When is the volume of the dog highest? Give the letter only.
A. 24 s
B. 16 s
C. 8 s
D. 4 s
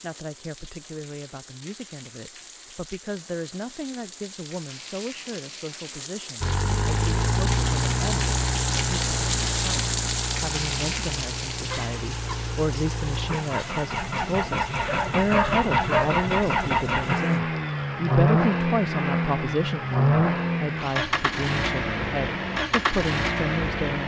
B.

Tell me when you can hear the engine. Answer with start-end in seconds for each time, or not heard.
6.4-24.0.